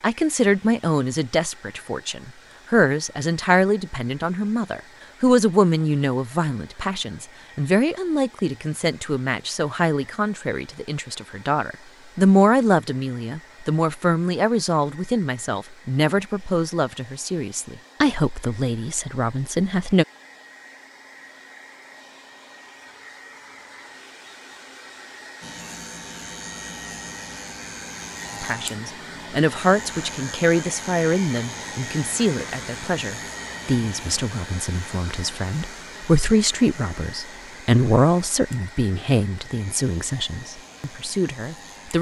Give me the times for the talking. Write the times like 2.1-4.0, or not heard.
0.0-20.1, 28.4-41.9.